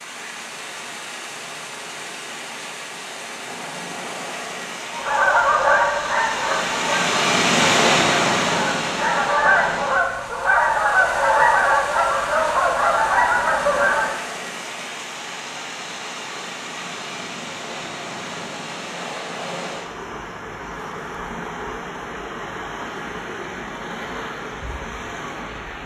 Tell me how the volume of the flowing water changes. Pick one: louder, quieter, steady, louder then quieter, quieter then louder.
louder then quieter.